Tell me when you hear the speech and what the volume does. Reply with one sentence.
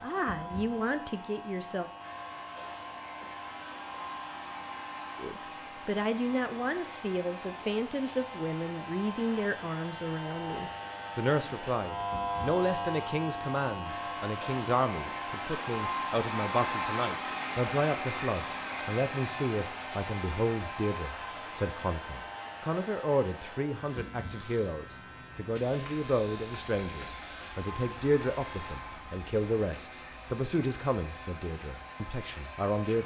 You can hear the speech briefly from 0.0 to 1.9 s; and from 5.2 to 33.0 s, at a steady volume.